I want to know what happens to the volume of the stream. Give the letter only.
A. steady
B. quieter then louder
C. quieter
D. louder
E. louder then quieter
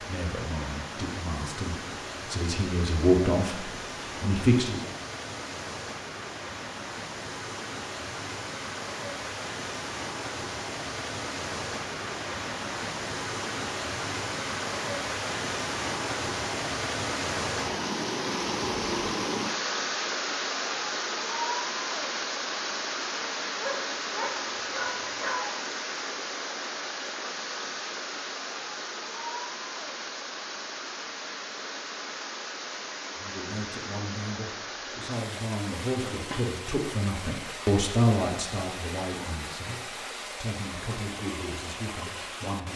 E.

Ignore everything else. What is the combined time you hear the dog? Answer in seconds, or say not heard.
2 s.